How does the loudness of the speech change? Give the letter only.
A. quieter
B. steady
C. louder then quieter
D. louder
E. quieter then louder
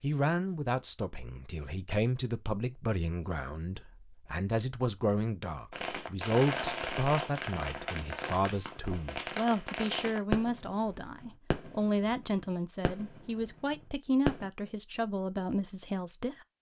B.